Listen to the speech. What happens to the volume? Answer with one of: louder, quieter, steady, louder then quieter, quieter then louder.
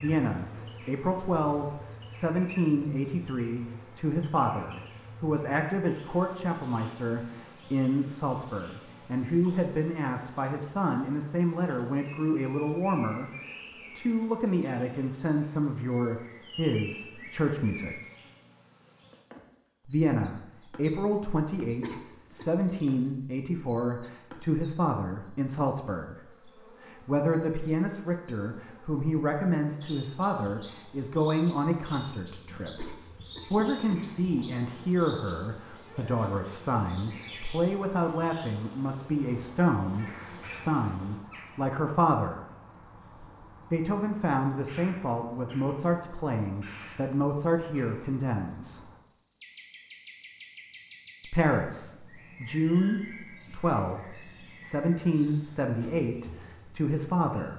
steady.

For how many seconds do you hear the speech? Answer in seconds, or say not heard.
52 s.